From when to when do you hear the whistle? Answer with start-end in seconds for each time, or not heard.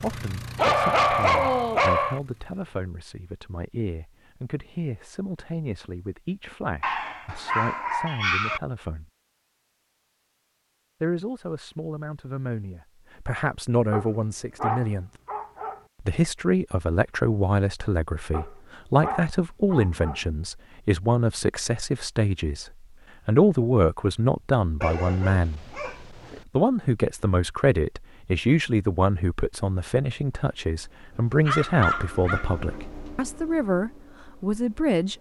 not heard.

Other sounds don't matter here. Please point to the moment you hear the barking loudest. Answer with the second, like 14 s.
1 s.